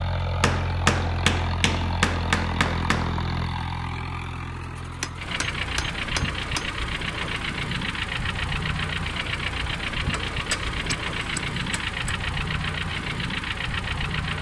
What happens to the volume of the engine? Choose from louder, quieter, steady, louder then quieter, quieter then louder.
steady.